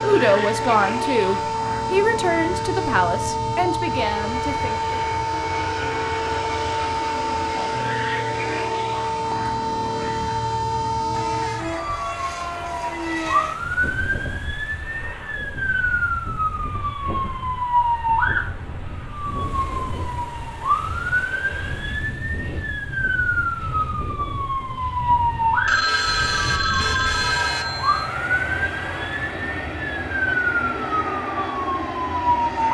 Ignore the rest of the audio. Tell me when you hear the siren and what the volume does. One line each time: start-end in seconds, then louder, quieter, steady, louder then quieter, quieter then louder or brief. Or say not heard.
0.0-32.6 steady.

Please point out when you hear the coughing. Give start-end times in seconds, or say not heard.
not heard.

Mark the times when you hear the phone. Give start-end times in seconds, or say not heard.
25.6-28.1.